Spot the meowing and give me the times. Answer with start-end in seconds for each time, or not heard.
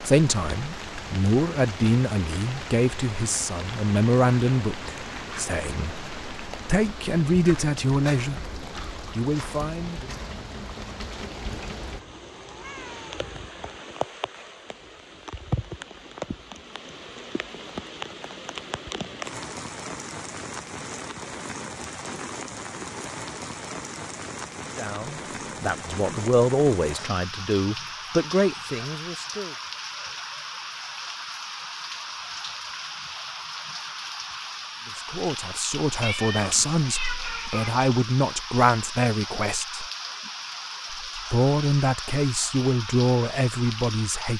11.9-13.4, 36.0-37.7.